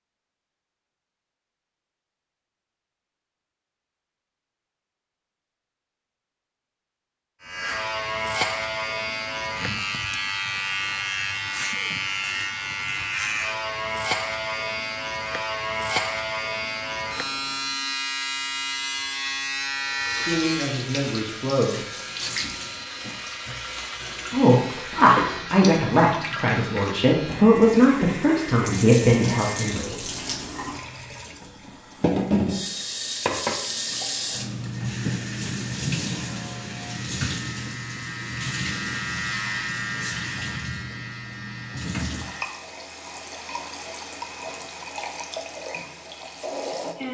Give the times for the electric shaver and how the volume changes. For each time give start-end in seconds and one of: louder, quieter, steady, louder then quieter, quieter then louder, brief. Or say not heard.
7.4-29.9 quieter
36.0-42.6 louder then quieter.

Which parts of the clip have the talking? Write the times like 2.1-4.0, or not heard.
20.2-21.8, 24.3-30.0.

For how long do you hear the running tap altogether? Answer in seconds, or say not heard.
27 s.